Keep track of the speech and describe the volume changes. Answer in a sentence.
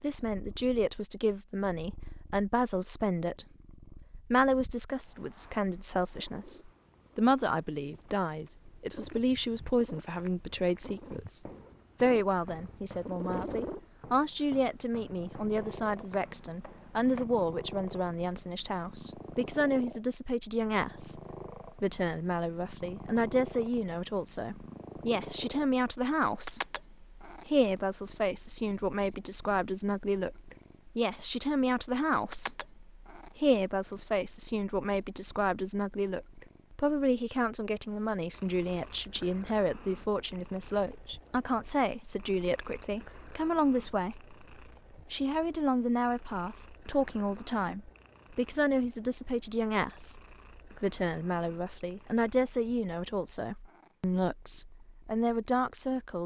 The volume of the speech stays about the same.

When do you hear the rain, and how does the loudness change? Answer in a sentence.
The rain can't be heard in this clip.